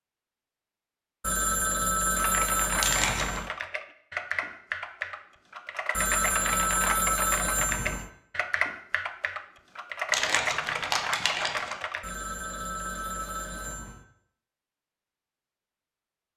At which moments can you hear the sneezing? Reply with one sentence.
You can't hear the sneezing here.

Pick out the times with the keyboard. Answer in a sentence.
The keyboard can be heard from 2.1 to 12.1 s.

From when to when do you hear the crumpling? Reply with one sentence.
You can hear the crumpling from 2.8 to 3.5 s and from 10.1 to 11.8 s.